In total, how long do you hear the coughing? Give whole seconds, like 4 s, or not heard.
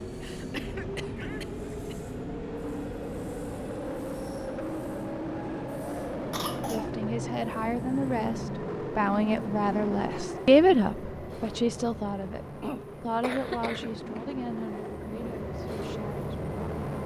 4 s.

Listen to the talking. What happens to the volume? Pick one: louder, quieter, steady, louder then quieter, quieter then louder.
louder then quieter.